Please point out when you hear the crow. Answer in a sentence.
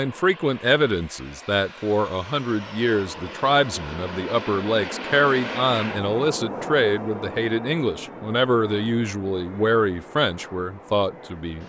You can't hear the crow here.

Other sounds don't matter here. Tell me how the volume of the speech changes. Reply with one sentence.
The volume of the speech stays about the same.